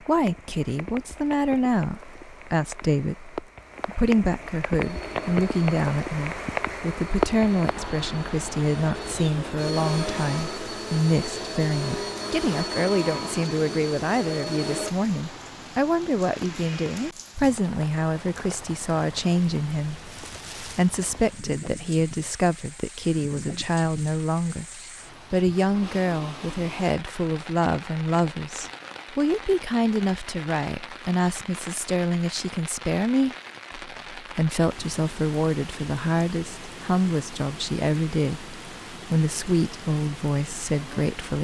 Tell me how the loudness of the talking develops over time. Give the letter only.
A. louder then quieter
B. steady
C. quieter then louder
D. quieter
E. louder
B.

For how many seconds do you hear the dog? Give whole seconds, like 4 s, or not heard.
not heard.